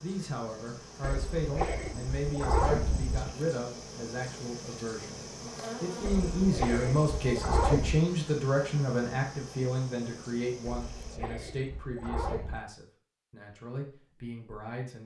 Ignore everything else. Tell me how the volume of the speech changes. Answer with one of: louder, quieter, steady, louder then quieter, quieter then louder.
louder then quieter.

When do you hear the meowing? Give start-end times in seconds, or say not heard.
1.0-3.4, 6.0-8.0, 10.7-12.6.